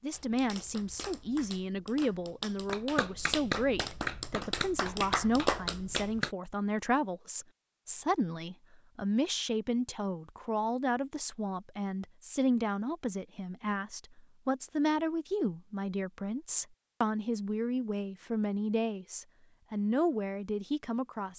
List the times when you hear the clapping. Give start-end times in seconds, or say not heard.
0.1-6.3.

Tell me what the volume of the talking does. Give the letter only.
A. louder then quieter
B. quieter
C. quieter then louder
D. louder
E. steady
E.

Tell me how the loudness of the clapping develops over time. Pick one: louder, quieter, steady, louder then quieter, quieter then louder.
louder.